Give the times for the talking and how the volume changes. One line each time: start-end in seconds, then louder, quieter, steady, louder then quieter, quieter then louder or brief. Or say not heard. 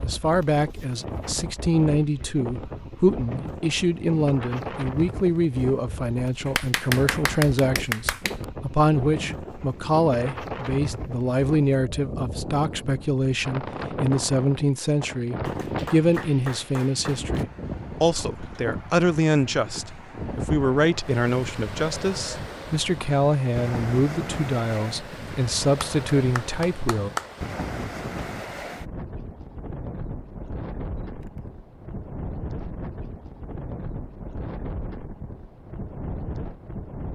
0.0-27.1 steady.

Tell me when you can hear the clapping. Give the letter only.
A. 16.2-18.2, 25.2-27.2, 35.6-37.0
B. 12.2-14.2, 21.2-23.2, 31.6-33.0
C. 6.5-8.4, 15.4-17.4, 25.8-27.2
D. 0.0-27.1
C.